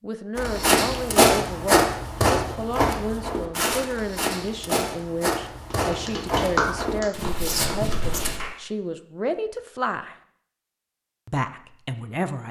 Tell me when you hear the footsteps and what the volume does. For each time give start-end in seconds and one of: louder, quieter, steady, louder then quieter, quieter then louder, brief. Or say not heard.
0.3-8.4 quieter.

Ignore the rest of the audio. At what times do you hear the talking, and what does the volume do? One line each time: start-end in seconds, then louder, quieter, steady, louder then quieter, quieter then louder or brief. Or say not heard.
0.0-10.2 steady
11.2-12.4 brief.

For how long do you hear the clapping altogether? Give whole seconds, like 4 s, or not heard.
3 s.